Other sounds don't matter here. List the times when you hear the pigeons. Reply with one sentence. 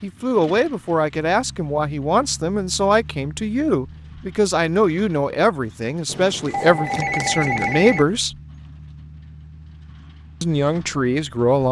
The pigeons can't be heard in this clip.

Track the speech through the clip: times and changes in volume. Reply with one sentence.
You can hear the speech from 0.0 to 8.3 s, at a steady volume; and briefly from 10.4 to 11.6 s.